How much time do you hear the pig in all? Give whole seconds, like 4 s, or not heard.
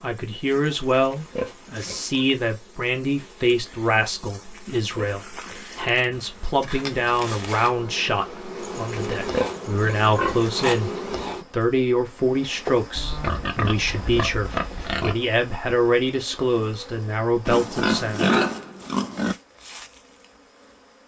9 s.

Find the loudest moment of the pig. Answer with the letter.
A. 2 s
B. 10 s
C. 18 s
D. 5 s
C.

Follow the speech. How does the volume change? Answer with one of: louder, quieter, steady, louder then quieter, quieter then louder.
steady.